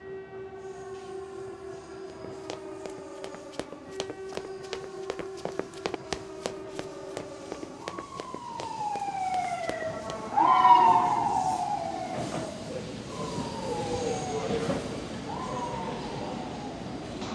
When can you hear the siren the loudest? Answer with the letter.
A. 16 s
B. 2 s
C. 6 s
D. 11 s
D.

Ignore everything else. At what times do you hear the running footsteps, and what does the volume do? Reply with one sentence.
The running footsteps can be heard from 2.3 to 10.1 s, getting louder then quieter.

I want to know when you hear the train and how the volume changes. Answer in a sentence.
You can hear the train from 0.0 to 17.2 s, getting louder.